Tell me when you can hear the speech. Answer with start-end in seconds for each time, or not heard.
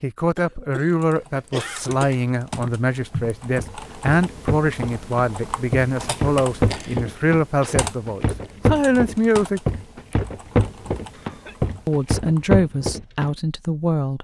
0.0-9.7, 11.8-14.1.